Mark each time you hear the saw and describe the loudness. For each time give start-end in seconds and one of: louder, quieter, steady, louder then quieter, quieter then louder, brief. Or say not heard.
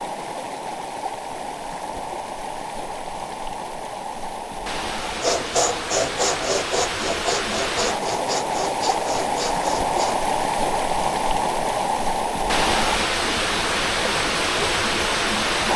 5.0-10.2 quieter.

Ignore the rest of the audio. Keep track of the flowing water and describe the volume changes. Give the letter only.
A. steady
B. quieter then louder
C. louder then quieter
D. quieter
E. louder
E.